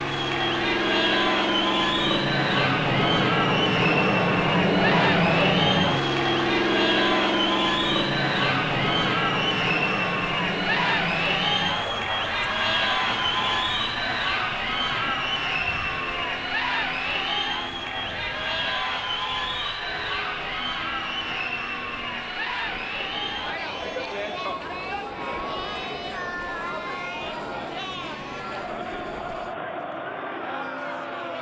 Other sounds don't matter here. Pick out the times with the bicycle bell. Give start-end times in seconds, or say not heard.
not heard.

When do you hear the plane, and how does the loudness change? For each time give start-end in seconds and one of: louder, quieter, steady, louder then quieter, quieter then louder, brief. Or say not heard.
0.0-31.3 quieter.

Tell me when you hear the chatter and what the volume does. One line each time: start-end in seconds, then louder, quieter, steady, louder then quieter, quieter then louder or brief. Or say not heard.
0.0-31.3 quieter.